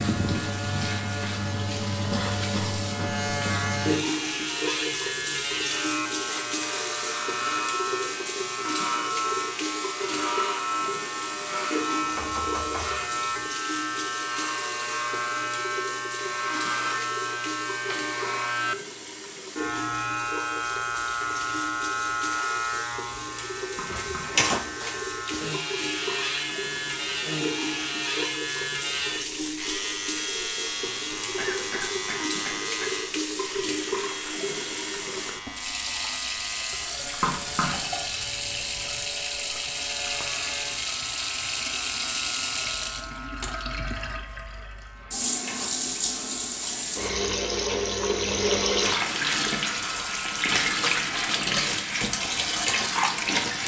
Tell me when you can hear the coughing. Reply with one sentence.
You can hear the coughing from 2.1 to 3.6 s, from 31.4 to 33.0 s and from 37.6 to 39.0 s.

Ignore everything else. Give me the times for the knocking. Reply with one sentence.
You can hear the knocking from 12.0 to 13.5 s, from 23.6 to 24.4 s and from 37.0 to 37.9 s.